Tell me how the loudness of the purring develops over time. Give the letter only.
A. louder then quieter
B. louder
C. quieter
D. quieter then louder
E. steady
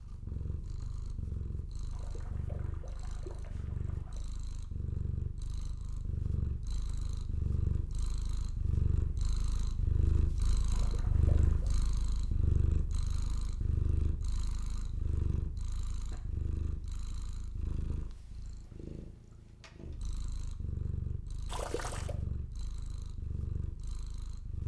A.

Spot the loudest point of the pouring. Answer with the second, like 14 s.
22 s.